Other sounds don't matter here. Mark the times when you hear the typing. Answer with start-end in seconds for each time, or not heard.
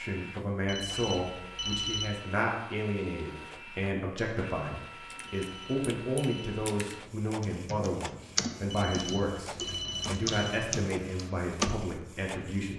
5.1-11.8.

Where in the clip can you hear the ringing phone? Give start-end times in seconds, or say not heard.
0.7-2.2, 5.2-6.5, 8.7-10.7.